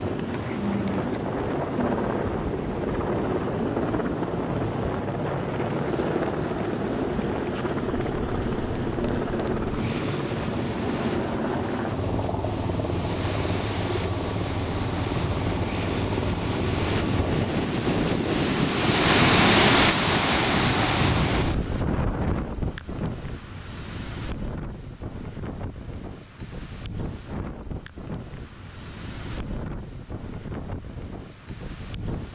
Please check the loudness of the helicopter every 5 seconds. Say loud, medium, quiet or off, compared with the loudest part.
loud, loud, loud, loud, off, off, off.